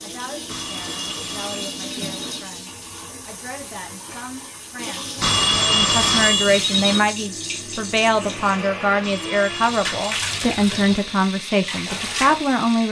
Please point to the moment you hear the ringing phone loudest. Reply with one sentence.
The loudest moment of the ringing phone is at 6 seconds.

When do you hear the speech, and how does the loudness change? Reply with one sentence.
You can hear the speech from 0.0 to 12.8 s, getting louder.